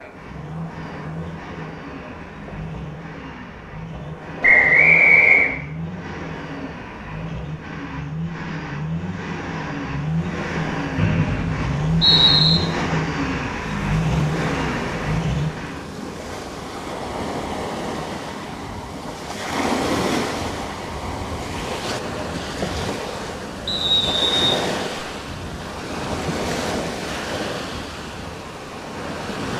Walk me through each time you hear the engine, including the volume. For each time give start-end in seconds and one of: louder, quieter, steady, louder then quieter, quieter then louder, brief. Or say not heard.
0.0-15.9 louder.